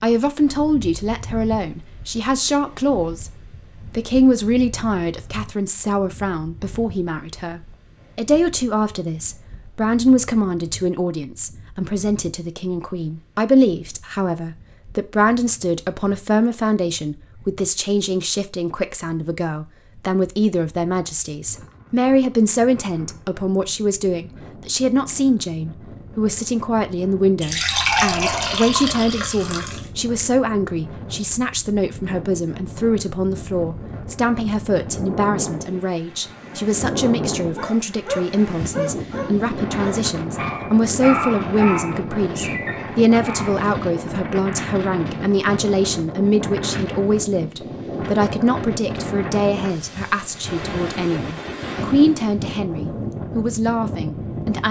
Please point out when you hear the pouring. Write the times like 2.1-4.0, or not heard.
27.4-29.9.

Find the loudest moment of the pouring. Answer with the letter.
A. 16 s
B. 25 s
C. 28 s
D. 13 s
C.